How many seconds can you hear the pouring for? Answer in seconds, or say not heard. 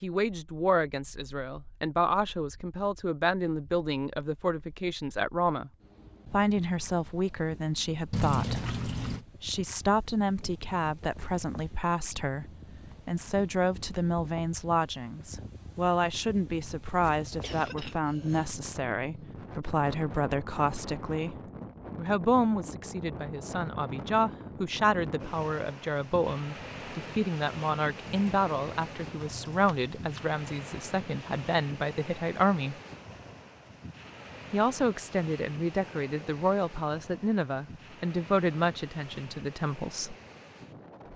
4 s.